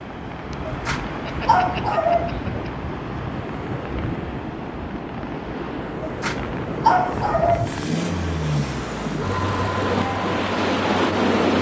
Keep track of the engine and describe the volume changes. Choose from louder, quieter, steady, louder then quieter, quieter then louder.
quieter.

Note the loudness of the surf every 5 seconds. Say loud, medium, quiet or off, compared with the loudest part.
medium, medium, loud.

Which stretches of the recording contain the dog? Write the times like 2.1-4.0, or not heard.
0.7-2.4, 6.0-8.0.